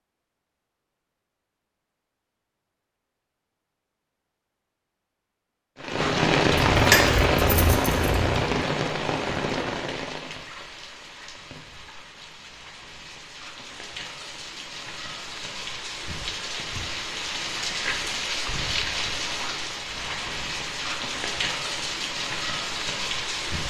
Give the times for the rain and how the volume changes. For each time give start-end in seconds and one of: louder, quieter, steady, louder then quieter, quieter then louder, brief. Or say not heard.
5.8-23.6 quieter then louder.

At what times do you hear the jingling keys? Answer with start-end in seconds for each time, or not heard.
6.5-8.5.